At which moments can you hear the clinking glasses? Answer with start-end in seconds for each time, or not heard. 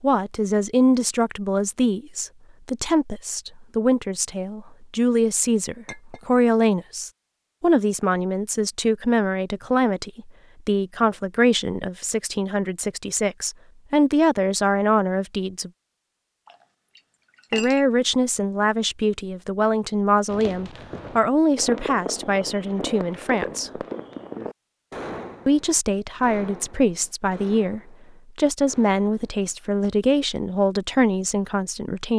5.8-6.2, 16.4-17.8.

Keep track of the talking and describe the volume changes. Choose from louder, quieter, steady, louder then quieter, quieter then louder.
steady.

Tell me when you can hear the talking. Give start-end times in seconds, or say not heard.
0.0-15.7, 17.5-23.8, 25.4-32.1.